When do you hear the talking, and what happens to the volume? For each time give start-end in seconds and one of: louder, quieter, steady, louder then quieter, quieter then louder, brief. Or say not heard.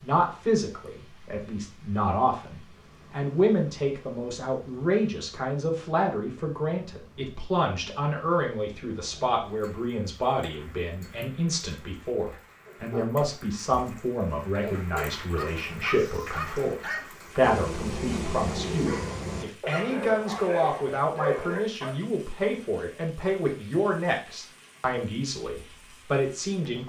0.0-26.8 steady.